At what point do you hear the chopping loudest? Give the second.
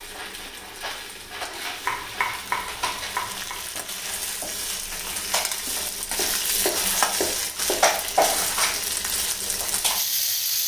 2 s.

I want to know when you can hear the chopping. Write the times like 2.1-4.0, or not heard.
1.9-3.5, 6.2-7.8.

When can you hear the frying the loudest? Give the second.
8 s.